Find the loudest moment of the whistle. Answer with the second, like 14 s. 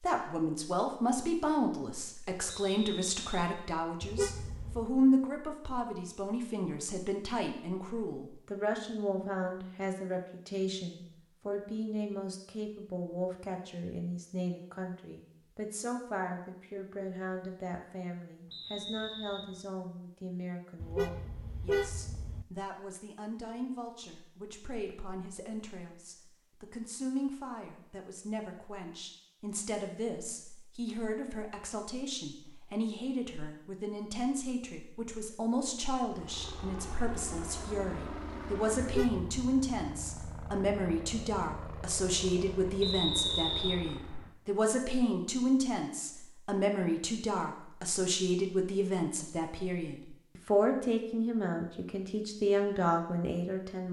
43 s.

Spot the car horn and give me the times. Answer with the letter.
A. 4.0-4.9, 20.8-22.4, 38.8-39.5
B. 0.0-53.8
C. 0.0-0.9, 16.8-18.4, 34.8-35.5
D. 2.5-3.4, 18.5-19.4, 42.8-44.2
A.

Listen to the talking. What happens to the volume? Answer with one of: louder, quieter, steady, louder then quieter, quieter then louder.
quieter then louder.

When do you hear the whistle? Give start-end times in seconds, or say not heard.
2.5-3.4, 18.5-19.4, 42.8-44.2.